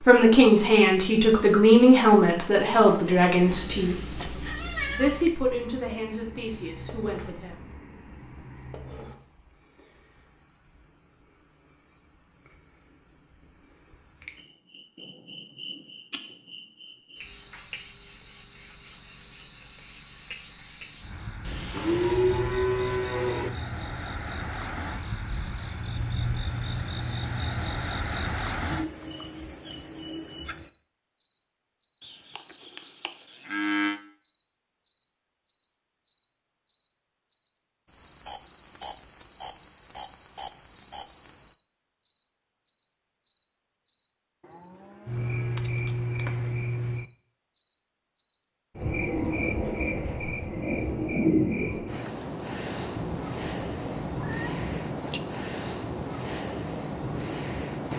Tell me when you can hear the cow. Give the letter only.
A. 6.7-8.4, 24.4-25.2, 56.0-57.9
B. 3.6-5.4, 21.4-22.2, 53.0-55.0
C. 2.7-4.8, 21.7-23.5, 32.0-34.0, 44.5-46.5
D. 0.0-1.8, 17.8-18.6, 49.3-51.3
C.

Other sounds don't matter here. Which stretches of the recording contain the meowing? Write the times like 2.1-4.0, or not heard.
3.6-5.4, 21.4-22.2, 53.0-55.0.